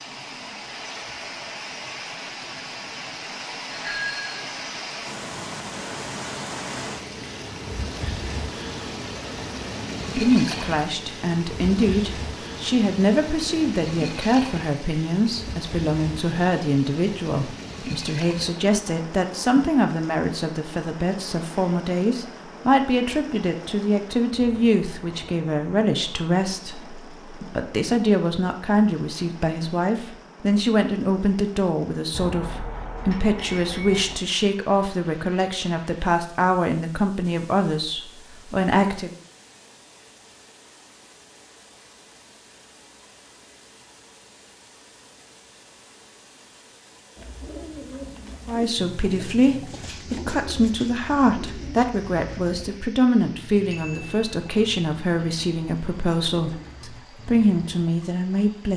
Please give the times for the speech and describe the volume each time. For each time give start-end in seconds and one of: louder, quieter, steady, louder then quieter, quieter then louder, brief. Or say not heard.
10.2-39.1 steady
48.5-58.7 steady.